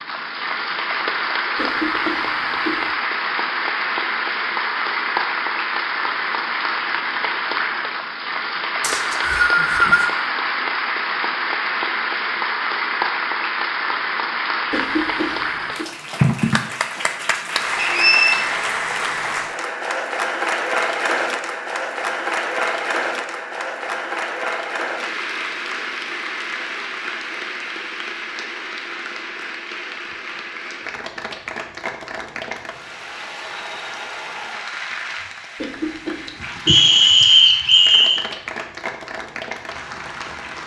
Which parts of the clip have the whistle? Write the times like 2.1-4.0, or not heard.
8.8-10.1, 17.8-18.4, 36.6-38.2.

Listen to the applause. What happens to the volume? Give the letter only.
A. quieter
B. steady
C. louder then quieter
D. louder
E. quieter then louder
A.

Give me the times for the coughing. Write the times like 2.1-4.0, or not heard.
1.6-3.0, 14.7-15.9, 35.5-37.0.